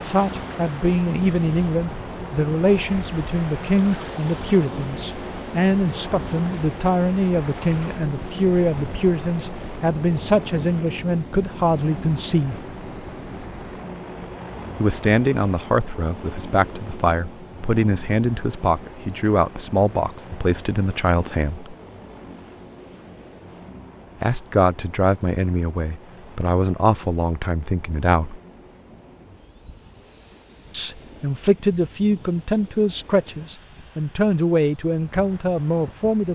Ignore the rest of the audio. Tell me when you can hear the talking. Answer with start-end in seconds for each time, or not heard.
0.0-12.6, 14.8-21.8, 24.2-28.4, 30.7-36.3.